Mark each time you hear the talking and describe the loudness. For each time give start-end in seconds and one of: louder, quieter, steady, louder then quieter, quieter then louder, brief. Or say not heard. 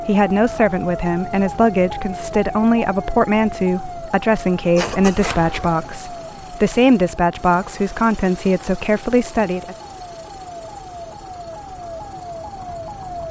0.1-9.8 steady.